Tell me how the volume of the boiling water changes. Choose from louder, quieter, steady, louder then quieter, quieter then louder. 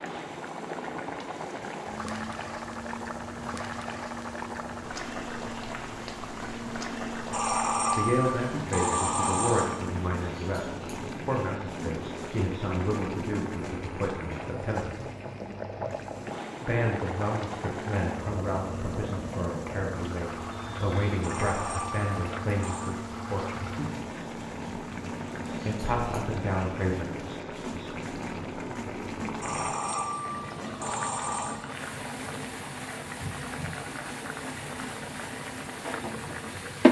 steady.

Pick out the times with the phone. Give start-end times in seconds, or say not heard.
7.3-9.8, 21.2-22.9, 29.4-31.6.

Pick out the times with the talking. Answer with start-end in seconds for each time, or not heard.
8.0-14.9, 16.6-23.8, 25.6-27.1.